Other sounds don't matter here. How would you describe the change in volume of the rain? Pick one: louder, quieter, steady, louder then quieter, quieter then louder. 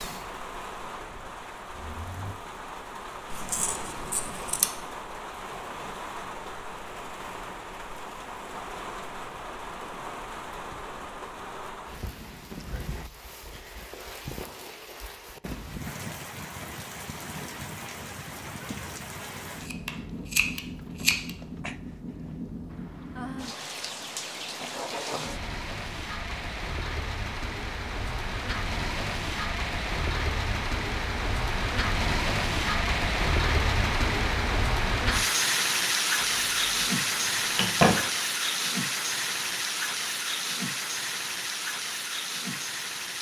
louder.